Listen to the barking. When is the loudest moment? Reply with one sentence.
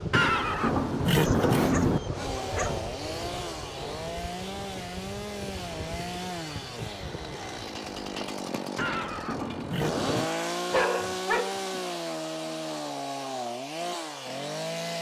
The volume of the barking peaks at 11 seconds.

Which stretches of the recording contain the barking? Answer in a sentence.
The barking can be heard from 1.2 to 2.8 s and from 10.7 to 11.8 s.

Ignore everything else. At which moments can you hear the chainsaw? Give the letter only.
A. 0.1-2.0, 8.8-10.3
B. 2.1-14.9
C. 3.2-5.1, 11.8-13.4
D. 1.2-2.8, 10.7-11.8
B.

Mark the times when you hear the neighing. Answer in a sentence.
The neighing can be heard from 0.1 to 2.0 s and from 8.8 to 10.3 s.